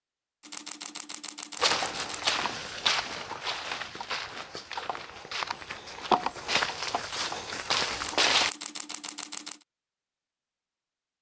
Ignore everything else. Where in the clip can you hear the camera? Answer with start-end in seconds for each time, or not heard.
0.4-2.4, 7.9-9.7.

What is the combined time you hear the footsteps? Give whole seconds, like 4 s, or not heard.
7 s.